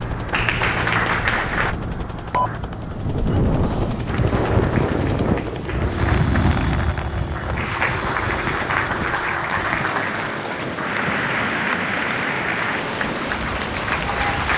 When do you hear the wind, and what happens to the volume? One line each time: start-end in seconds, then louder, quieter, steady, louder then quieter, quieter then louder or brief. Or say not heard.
0.2-14.5 louder then quieter.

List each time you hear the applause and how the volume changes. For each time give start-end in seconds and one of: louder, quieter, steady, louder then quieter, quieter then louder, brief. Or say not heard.
0.1-1.8 brief
4.0-14.5 louder.